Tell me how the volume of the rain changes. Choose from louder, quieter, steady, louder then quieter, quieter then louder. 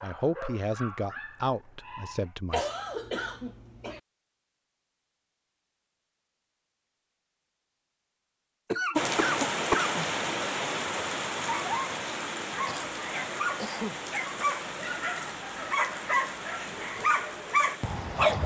quieter.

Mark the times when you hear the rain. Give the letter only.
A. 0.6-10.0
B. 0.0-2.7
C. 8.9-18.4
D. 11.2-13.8
C.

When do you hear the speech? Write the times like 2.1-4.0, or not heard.
0.0-2.7.